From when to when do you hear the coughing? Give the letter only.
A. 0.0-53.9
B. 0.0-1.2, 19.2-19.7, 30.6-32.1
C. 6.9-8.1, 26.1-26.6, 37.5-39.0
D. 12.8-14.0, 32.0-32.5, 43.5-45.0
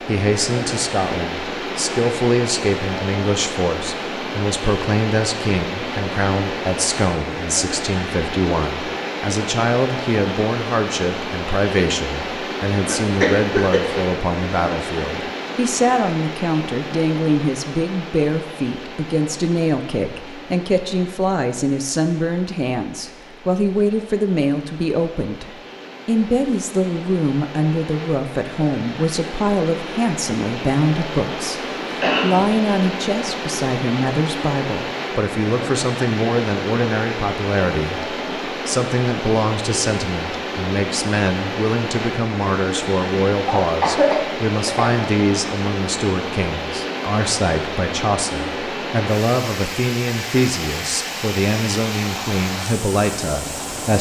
D.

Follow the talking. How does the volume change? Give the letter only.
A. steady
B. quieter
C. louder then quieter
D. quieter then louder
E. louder
A.